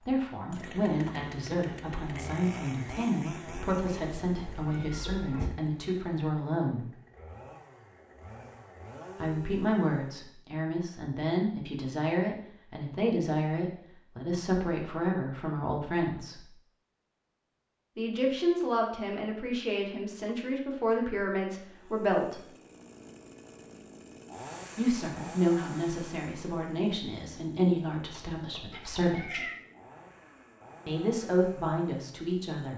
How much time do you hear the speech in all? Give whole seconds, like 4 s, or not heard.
25 s.